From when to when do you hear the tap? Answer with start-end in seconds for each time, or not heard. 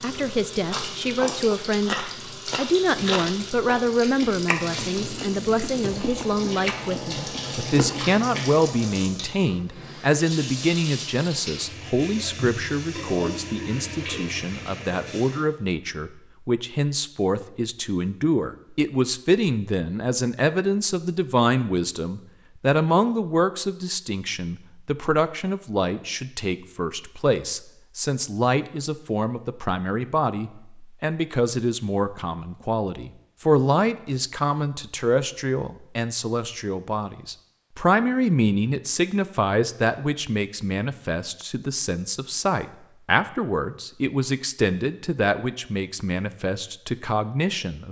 0.0-15.4.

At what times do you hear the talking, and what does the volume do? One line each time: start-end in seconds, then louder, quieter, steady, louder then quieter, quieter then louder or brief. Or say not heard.
0.0-47.8 steady.